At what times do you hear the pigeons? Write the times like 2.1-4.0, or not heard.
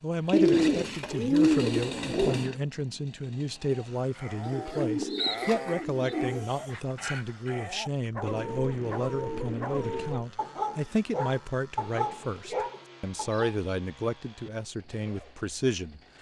0.3-2.4, 4.5-6.5, 8.2-10.2, 12.3-13.6.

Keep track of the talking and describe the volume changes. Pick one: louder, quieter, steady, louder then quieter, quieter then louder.
steady.